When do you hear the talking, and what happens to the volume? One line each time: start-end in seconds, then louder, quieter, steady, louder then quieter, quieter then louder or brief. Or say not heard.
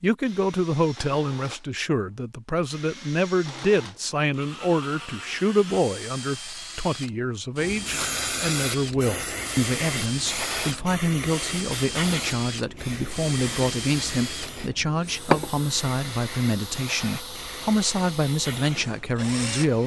0.0-19.8 steady.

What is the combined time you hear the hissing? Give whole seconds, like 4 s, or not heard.
12 s.